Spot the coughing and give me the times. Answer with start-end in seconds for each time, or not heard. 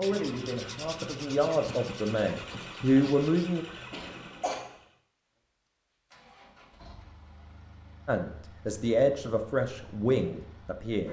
3.9-4.5.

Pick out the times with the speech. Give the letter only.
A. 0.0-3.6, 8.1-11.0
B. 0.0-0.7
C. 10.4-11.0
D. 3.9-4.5
A.